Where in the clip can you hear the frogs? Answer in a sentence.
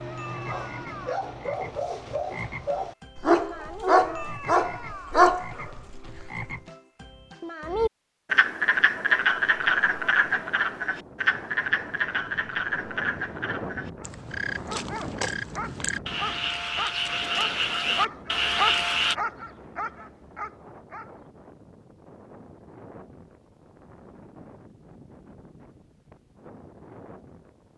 The frogs can be heard from 0.0 to 19.1 s.